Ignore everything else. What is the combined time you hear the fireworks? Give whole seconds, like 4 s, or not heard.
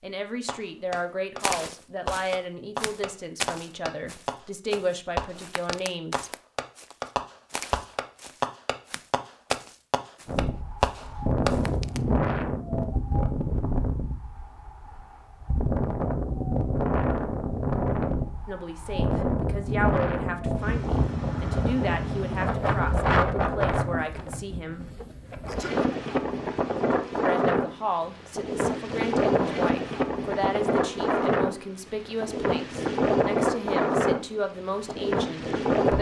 11 s.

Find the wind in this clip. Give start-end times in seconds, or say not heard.
10.2-35.9.